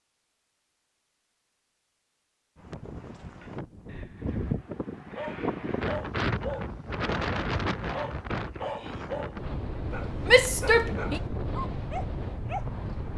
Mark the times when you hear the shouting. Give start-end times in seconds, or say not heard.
10.2-11.2.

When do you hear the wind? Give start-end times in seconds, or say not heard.
2.5-13.1.